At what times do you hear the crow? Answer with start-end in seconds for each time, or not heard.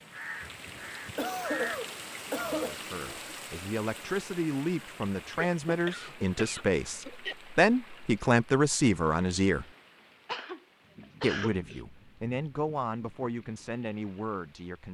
0.0-1.8.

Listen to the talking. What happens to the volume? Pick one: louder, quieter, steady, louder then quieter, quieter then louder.
louder then quieter.